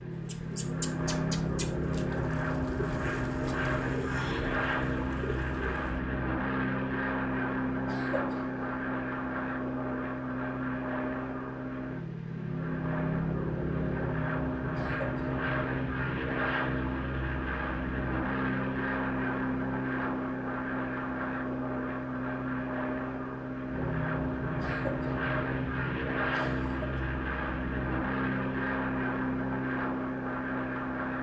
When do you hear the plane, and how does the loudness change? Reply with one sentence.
You can hear the plane from 0.0 to 31.1 s, at a steady volume.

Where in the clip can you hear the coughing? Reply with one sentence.
You can hear the coughing from 7.8 to 8.4 s, from 14.7 to 15.3 s, from 24.6 to 25.1 s and from 26.3 to 27.0 s.